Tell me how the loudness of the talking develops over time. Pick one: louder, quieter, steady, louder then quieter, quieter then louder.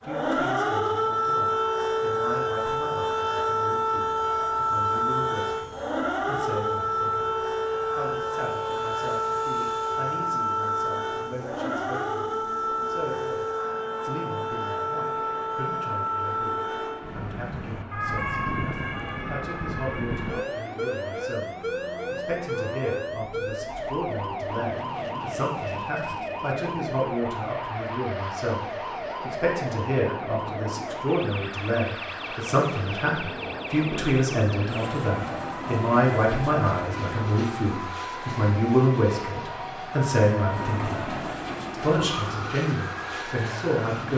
louder.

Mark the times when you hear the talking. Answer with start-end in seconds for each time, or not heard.
0.0-44.1.